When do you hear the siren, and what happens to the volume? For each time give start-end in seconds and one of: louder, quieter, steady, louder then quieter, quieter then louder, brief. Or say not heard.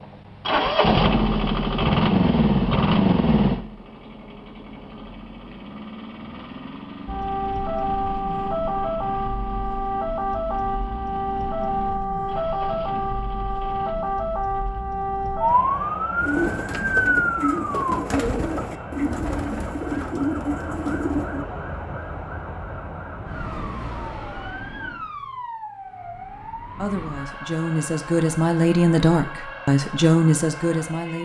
7.0-31.2 quieter.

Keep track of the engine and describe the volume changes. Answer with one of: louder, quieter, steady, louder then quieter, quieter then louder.
quieter.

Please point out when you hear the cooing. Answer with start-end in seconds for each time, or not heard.
16.1-21.4.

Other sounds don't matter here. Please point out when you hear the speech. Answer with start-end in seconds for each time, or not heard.
26.8-31.2.